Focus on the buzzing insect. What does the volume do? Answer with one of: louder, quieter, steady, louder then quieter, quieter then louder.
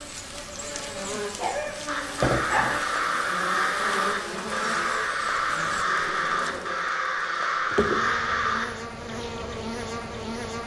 steady.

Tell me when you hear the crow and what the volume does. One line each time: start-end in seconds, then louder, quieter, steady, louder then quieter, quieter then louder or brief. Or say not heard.
1.9-8.7 steady.